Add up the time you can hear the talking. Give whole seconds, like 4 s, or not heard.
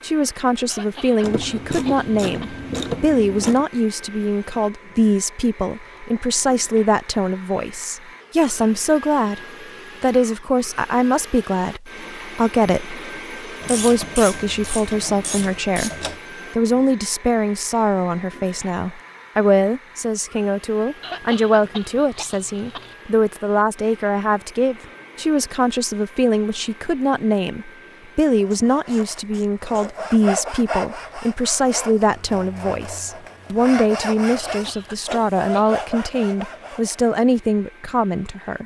37 s.